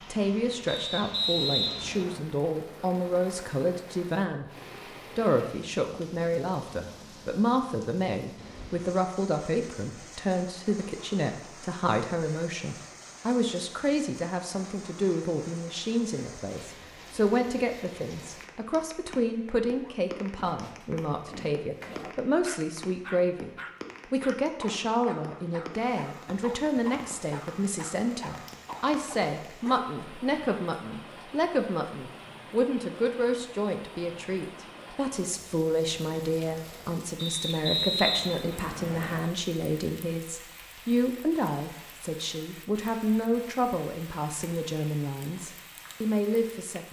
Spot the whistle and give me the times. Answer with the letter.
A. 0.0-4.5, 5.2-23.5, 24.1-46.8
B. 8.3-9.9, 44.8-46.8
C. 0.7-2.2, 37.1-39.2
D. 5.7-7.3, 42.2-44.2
C.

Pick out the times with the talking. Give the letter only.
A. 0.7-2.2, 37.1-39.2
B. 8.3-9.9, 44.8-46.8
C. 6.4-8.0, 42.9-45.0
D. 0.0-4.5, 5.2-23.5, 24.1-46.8
D.